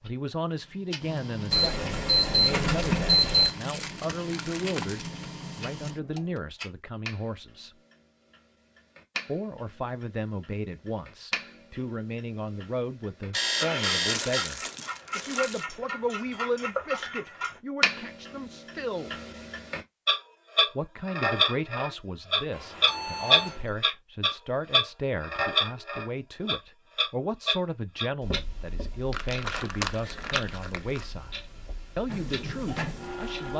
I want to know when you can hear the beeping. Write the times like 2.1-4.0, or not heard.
1.5-3.5, 13.3-14.5, 22.5-23.7.